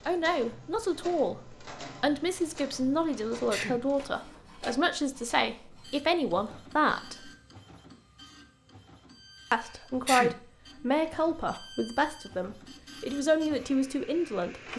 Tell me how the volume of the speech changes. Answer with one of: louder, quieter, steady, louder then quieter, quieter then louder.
steady.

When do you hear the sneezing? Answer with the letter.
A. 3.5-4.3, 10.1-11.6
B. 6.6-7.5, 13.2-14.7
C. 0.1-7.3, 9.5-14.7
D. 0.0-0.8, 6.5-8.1
A.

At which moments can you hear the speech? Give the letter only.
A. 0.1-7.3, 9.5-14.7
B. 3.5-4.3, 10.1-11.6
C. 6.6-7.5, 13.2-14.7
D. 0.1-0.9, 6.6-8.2
A.